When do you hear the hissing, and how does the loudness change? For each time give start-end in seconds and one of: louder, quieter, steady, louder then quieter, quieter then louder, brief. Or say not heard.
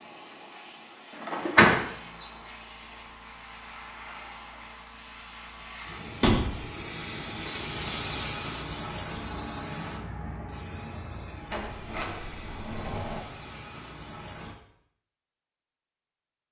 0.0-14.6 louder then quieter.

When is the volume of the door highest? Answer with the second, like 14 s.
2 s.